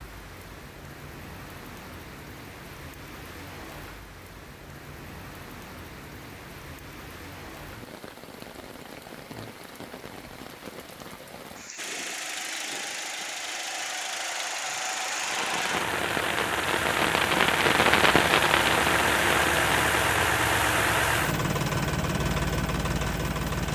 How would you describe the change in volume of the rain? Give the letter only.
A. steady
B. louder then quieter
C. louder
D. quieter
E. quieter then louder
C.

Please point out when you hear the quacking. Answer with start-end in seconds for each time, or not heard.
not heard.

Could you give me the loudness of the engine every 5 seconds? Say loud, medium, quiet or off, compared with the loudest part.
off, off, medium, loud, loud.